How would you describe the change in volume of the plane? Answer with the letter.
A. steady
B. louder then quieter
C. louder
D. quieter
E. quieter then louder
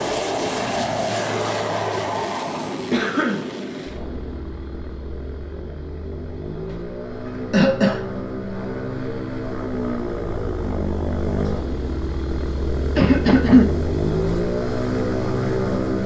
E.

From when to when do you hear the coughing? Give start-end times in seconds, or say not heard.
2.9-3.5, 7.2-8.0, 12.9-13.7.